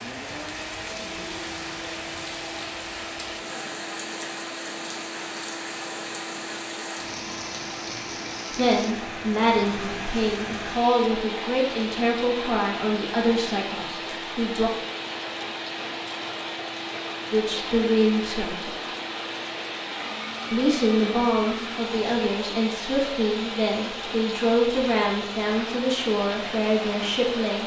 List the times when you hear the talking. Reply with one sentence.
The talking can be heard from 8.6 to 14.7 s, from 17.3 to 18.8 s and from 20.5 to 27.6 s.